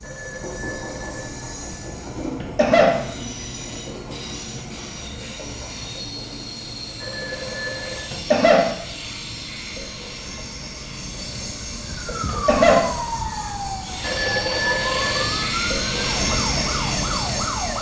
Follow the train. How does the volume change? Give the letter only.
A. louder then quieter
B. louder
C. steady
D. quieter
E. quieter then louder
B.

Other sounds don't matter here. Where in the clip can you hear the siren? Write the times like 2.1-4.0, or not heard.
11.8-17.7.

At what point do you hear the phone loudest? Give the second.
15 s.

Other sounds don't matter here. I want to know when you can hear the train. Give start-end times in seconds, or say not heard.
0.0-17.7.